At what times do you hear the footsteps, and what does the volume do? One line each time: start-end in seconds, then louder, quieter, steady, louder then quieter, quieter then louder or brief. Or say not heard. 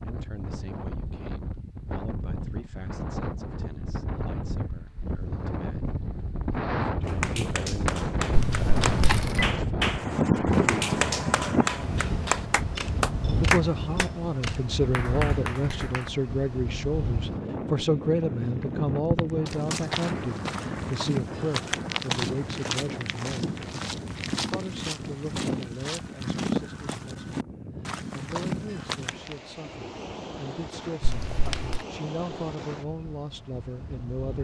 18.6-29.4 steady.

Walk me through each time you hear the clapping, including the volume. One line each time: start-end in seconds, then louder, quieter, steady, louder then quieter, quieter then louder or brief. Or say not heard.
7.0-14.1 louder
14.9-16.1 brief.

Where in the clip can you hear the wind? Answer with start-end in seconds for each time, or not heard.
0.0-34.3.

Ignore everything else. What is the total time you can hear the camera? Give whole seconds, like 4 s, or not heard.
4 s.